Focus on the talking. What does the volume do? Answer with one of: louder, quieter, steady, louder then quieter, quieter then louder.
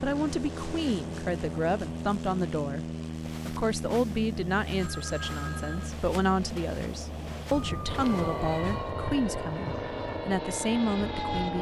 steady.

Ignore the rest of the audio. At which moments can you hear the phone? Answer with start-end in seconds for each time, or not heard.
4.8-6.0.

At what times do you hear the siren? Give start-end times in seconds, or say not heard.
7.5-11.5.